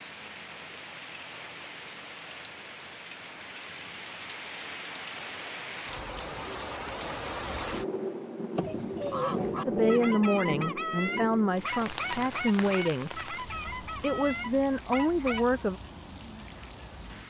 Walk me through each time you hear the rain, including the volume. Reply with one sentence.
The rain can be heard from 0.0 to 17.2 s, getting louder then quieter.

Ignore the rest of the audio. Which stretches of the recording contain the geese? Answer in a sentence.
The geese can be heard from 8.6 to 15.4 s.